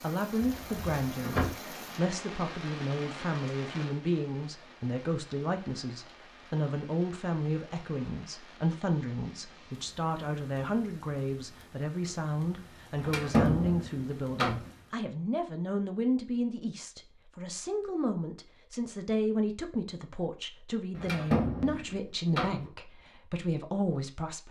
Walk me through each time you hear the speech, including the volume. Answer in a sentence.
The speech can be heard from 0.0 to 24.4 s, at a steady volume.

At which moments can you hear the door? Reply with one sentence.
You can hear the door from 0.4 to 1.4 s, from 12.9 to 14.7 s and from 20.9 to 22.6 s.